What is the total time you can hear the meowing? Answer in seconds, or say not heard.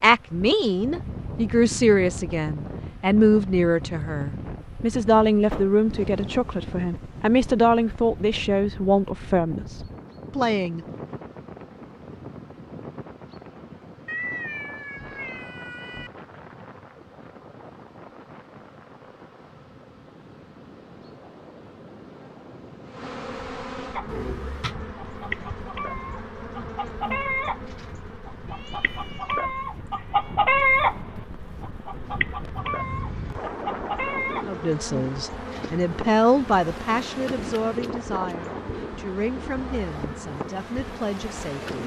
4 s.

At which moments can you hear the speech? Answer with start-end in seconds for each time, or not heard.
0.0-10.8, 34.5-41.8.